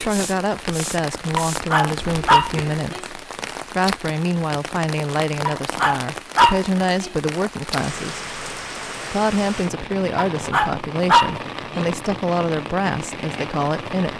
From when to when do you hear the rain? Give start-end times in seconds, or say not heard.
0.0-14.1.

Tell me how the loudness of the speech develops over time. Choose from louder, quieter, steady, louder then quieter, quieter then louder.
steady.